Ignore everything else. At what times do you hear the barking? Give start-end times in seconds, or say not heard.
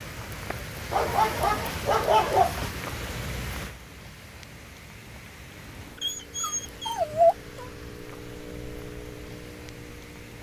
0.9-2.7, 6.0-7.7.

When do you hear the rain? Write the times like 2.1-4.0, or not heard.
0.0-10.3.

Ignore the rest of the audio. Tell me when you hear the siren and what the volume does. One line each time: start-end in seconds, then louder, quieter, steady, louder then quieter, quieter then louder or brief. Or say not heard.
not heard.